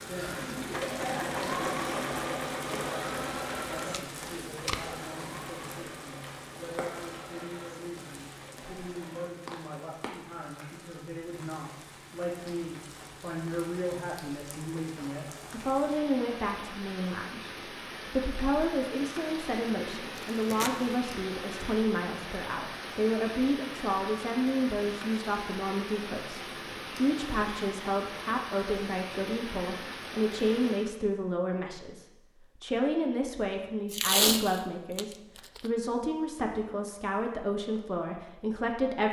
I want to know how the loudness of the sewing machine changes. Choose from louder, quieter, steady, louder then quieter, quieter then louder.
quieter.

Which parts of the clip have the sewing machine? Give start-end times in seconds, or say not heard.
0.0-9.3.